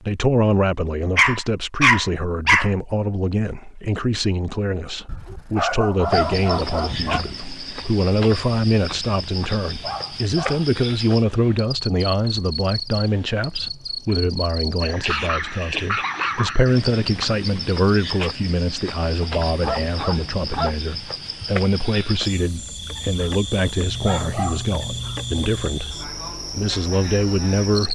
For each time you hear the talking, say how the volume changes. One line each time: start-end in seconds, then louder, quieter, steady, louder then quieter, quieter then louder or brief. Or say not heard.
0.0-27.9 steady.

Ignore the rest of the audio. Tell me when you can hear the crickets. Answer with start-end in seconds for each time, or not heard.
6.0-27.9.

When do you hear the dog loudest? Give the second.
2 s.